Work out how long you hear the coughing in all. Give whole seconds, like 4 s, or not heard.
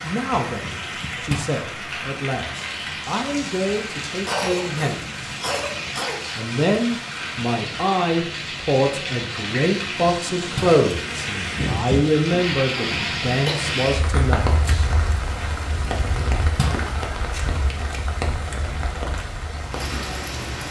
3 s.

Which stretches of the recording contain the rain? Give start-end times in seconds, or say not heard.
0.0-20.6.